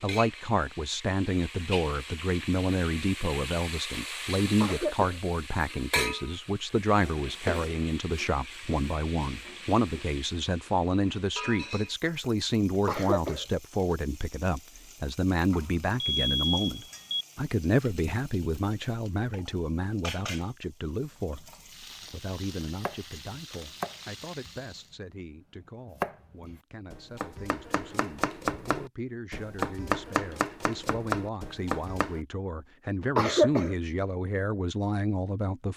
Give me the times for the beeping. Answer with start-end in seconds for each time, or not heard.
15.5-17.2.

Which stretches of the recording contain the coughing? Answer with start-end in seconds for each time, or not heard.
4.6-5.2, 12.8-13.4, 33.1-33.8.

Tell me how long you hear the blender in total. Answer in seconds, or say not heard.
not heard.